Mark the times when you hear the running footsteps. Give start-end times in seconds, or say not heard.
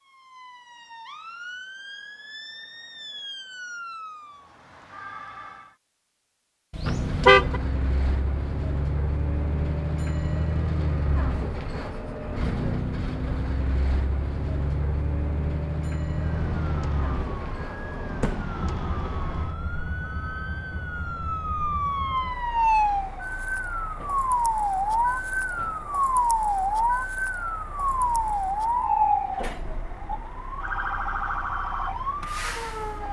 not heard.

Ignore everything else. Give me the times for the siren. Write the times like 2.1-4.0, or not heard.
0.0-5.8, 16.1-33.0.